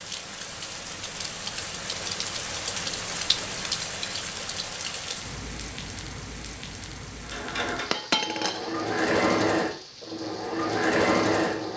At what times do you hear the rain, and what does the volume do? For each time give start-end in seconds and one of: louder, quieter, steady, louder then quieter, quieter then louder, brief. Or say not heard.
0.0-11.7 quieter.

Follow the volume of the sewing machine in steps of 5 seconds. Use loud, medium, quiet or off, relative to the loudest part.
off, loud, loud.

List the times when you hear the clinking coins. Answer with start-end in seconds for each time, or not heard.
3.8-4.2, 7.9-8.7.